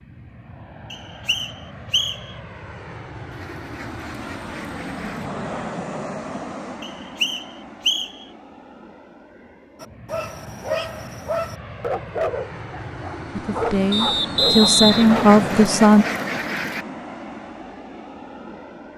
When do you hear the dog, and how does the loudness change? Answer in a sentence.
You can hear the dog from 9.8 to 15.3 s, at a steady volume.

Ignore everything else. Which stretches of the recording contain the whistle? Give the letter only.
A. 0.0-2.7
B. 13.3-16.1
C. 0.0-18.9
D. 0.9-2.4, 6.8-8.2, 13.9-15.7
D.